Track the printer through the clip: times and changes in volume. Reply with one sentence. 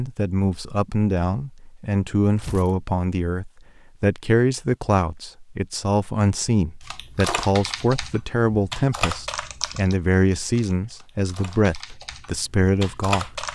The printer can't be heard in this clip.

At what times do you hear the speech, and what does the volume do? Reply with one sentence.
You can hear the speech from 0.0 to 13.4 s, at a steady volume.